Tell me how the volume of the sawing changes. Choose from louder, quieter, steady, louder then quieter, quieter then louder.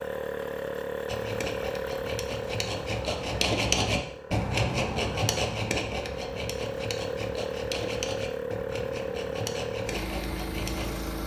louder then quieter.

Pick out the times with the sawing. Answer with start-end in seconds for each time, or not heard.
1.1-11.0.